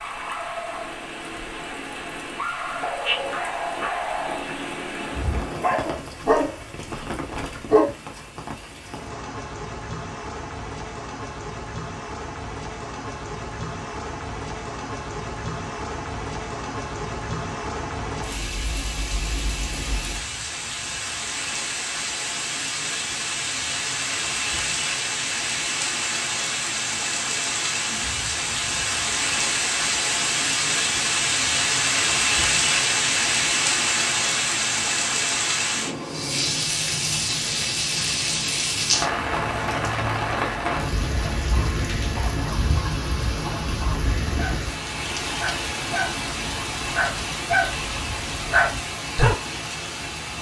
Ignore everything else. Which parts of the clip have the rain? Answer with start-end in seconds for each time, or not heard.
0.0-50.3.